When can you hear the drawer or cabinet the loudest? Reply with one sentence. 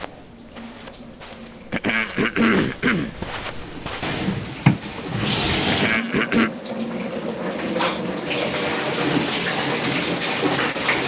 The loudest moment of the drawer or cabinet is at 5 seconds.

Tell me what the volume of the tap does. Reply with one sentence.
The volume of the tap goes up.